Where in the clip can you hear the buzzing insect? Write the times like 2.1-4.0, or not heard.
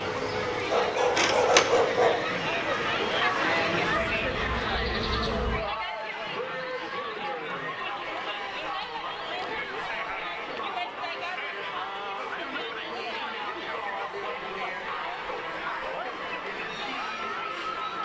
0.0-5.7.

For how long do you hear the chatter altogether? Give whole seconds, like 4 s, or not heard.
18 s.